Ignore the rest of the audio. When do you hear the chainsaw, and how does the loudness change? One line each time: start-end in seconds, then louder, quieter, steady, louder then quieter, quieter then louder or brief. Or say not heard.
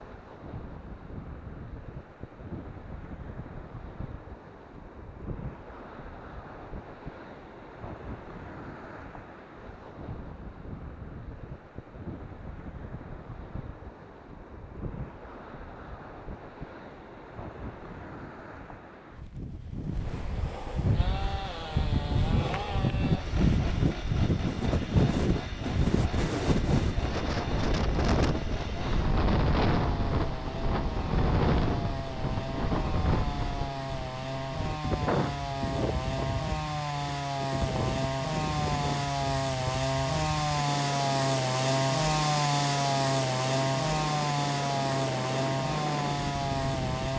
20.9-47.1 louder.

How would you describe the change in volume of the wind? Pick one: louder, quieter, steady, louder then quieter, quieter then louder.
louder then quieter.